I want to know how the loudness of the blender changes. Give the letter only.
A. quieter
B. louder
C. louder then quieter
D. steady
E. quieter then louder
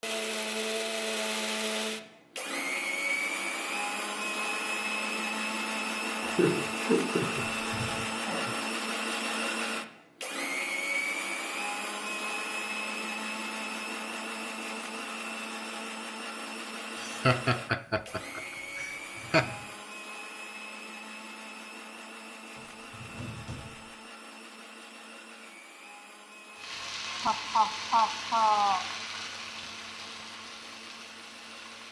A.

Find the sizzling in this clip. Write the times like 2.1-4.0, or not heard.
26.6-31.8.